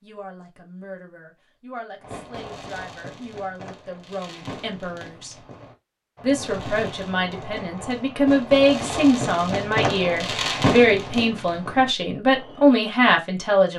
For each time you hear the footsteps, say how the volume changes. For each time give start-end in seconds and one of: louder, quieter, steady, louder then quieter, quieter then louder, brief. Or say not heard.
not heard.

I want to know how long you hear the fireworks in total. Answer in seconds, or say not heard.
11 s.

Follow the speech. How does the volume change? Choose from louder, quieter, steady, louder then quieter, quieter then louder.
louder.